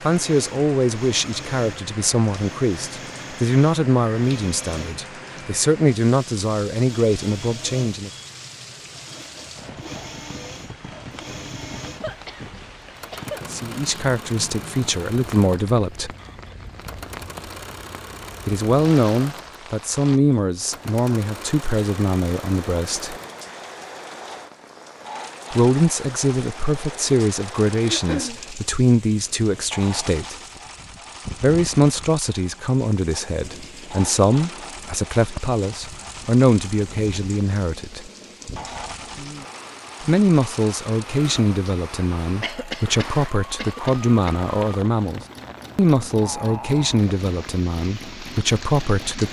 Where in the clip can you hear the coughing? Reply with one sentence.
You can hear the coughing from 12.0 to 13.4 s, from 27.8 to 28.4 s and from 42.4 to 44.4 s.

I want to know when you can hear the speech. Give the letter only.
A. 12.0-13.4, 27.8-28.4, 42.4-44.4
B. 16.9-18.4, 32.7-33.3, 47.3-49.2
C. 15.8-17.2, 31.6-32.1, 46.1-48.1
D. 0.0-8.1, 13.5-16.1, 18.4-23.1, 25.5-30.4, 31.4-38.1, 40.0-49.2
D.